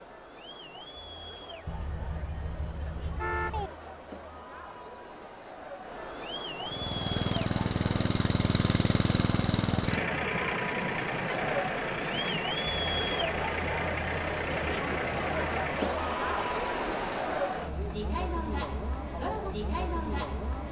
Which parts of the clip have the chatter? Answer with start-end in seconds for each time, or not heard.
0.0-20.6.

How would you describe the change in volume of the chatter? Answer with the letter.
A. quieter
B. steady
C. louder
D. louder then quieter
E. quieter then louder
C.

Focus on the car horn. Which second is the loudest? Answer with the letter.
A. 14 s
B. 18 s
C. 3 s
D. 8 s
C.